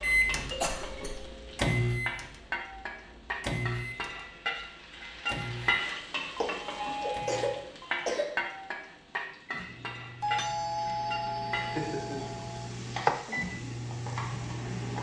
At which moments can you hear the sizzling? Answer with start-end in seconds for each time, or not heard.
0.0-14.9.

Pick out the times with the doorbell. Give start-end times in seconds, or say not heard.
0.5-1.6, 6.3-8.1, 10.2-12.7.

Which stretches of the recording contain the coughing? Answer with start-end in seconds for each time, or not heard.
0.6-1.3, 6.4-8.3, 11.5-12.4.